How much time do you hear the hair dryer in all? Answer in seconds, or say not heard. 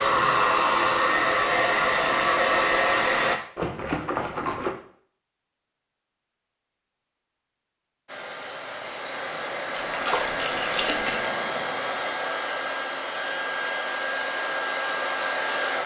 11 s.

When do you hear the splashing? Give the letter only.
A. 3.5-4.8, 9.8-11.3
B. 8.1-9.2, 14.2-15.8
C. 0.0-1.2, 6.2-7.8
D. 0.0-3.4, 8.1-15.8
A.